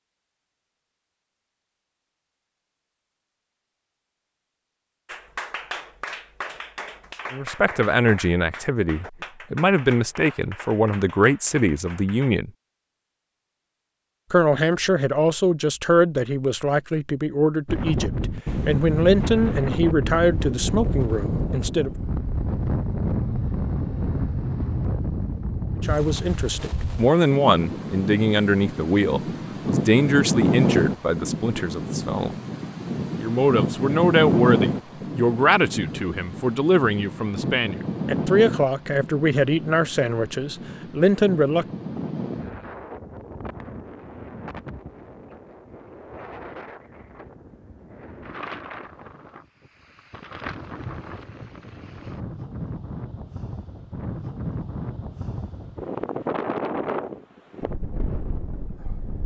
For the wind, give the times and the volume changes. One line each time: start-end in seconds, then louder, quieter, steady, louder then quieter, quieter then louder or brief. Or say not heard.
17.6-59.2 quieter then louder.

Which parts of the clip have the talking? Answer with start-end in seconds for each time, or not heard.
7.3-12.5, 14.3-21.9, 25.8-32.4, 33.1-41.6.